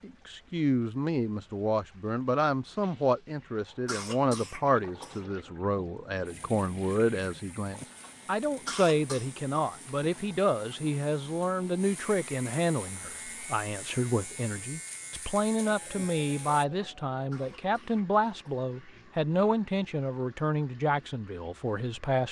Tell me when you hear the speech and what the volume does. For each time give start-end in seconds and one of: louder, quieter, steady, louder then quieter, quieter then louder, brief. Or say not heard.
0.0-22.2 steady.